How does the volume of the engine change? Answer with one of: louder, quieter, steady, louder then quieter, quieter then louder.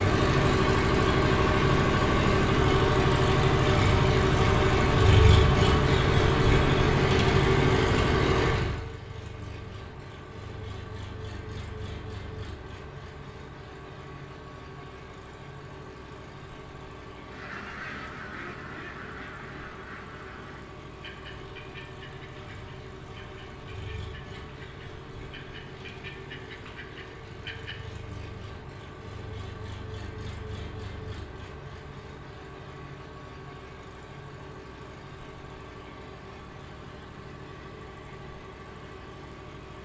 quieter.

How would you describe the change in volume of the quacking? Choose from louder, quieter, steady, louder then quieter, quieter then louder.
quieter then louder.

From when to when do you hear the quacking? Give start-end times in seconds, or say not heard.
17.2-27.9.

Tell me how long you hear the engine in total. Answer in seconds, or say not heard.
40 s.